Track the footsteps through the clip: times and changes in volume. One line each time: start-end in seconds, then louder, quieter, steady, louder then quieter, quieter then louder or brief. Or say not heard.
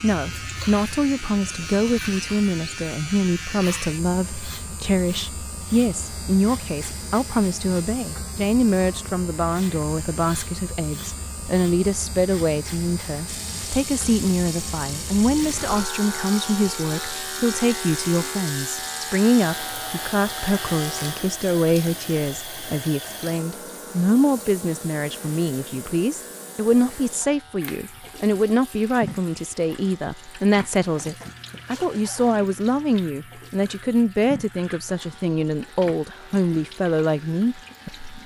not heard.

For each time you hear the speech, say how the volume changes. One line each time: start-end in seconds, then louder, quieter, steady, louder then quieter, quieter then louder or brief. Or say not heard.
0.0-38.1 steady.